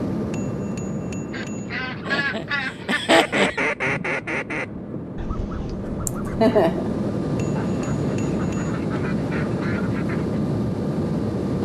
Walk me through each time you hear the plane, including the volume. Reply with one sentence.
The plane can be heard from 0.0 to 11.6 s, getting quieter then louder.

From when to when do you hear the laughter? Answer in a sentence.
You can hear the laughter from 2.0 to 3.6 s and from 6.0 to 6.9 s.